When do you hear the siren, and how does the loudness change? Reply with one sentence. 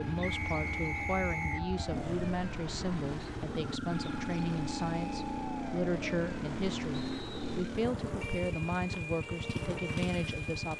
You can hear the siren from 0.0 to 10.7 s, at a steady volume.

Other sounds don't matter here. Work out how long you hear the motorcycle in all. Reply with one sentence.
The motorcycle can be heard for 11 seconds in total.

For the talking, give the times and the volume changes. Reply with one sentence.
You can hear the talking from 0.0 to 10.7 s, at a steady volume.